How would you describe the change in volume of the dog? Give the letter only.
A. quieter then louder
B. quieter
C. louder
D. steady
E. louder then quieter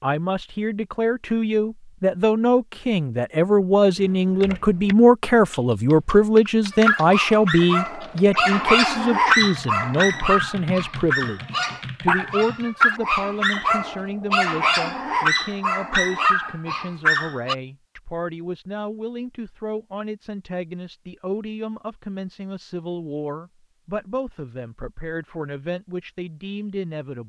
D.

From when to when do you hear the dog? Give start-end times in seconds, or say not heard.
6.7-17.6.